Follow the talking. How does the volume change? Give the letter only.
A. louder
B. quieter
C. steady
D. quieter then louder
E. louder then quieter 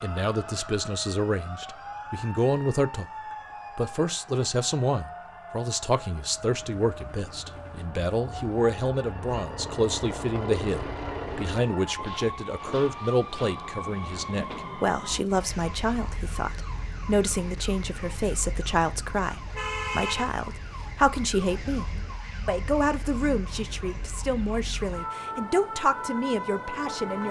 C.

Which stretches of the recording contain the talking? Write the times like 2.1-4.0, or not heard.
0.0-3.1, 3.8-27.2.